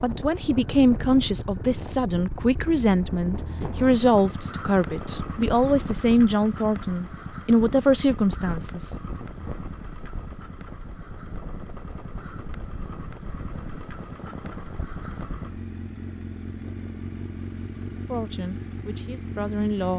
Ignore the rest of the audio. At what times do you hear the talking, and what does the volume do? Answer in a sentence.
The talking can be heard from 0.0 to 8.9 s, at a steady volume; and briefly from 18.1 to 19.9 s.